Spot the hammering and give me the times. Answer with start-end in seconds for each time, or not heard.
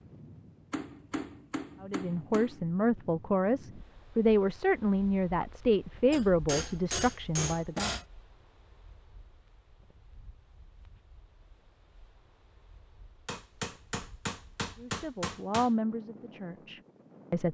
0.7-2.6, 6.1-8.1, 13.2-15.7.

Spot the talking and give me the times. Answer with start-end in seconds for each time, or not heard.
1.8-8.0, 14.8-17.4.